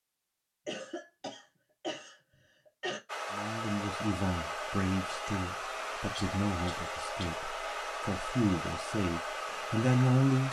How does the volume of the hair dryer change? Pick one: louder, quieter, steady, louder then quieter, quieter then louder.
steady.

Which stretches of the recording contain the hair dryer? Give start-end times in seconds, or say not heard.
3.0-10.4.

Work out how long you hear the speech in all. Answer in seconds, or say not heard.
7 s.